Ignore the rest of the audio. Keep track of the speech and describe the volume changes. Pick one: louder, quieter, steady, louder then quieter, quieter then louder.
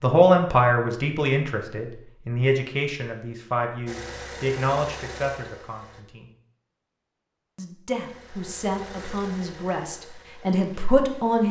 quieter then louder.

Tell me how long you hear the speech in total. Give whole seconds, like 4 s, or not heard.
10 s.